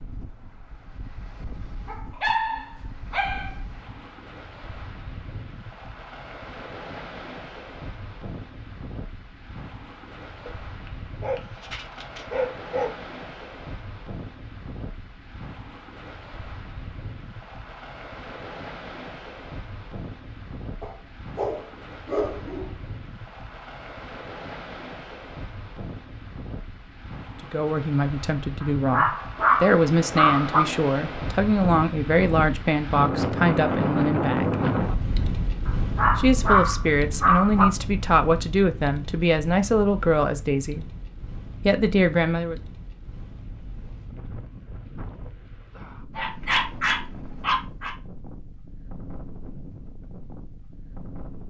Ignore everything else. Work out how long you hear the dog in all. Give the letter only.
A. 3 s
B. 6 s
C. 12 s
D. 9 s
C.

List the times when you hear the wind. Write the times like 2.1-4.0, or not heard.
0.0-51.4.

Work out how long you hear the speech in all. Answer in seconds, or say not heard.
13 s.